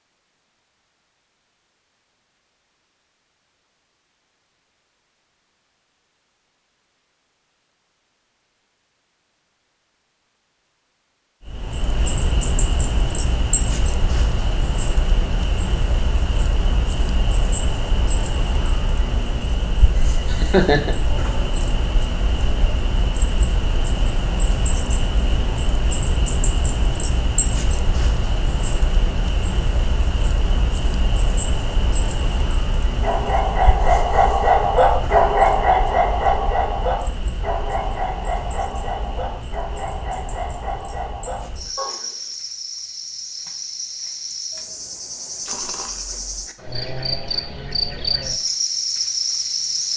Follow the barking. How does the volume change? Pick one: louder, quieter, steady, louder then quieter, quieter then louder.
quieter.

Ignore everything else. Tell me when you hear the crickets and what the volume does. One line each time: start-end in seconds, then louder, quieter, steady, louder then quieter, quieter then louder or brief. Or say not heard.
11.4-49.9 quieter then louder.